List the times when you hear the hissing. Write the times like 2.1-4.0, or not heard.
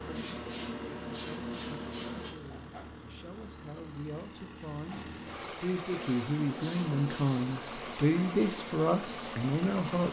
0.0-2.4, 5.9-10.0.